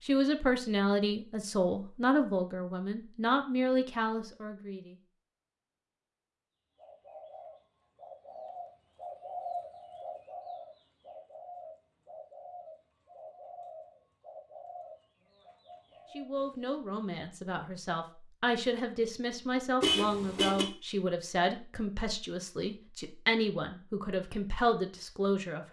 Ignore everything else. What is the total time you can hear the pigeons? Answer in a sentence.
You can hear the pigeons for 10 seconds altogether.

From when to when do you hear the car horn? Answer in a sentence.
The car horn can be heard from 19.8 to 20.6 s.